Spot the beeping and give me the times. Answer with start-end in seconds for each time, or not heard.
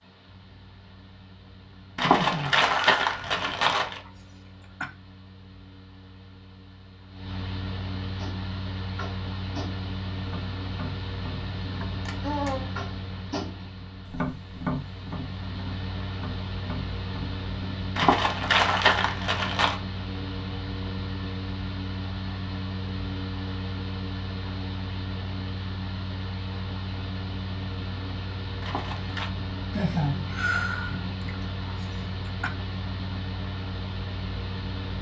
not heard.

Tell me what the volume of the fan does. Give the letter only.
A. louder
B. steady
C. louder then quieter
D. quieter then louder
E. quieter
A.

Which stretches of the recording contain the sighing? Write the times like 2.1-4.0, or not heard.
2.1-4.9, 11.8-12.7, 29.7-32.5.